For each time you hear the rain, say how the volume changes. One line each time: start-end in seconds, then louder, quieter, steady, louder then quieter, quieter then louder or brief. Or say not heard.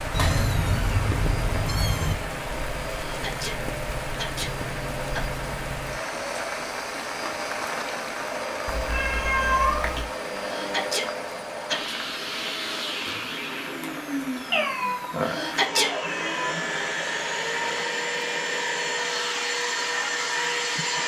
0.0-17.9 quieter.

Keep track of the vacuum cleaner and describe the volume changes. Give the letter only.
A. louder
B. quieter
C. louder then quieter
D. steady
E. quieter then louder
A.